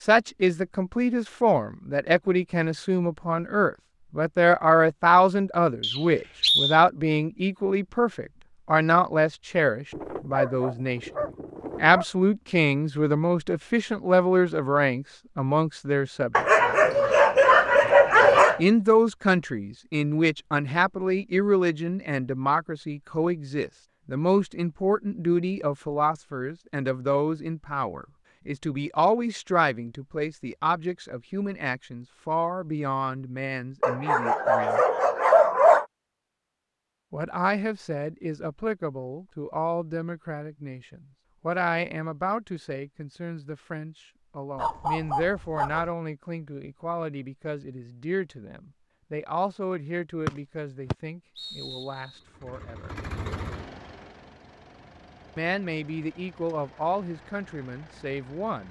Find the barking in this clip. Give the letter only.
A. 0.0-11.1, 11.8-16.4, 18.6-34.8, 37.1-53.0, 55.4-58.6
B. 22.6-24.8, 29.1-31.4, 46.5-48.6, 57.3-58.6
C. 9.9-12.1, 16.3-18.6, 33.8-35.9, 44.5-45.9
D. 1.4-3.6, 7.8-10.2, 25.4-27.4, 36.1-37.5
C.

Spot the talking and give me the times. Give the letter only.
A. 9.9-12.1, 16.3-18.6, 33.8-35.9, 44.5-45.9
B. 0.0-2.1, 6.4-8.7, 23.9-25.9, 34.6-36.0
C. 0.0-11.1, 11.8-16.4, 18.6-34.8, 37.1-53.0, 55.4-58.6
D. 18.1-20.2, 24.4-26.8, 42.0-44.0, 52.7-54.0
C.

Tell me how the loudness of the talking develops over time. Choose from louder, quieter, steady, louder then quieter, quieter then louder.
quieter.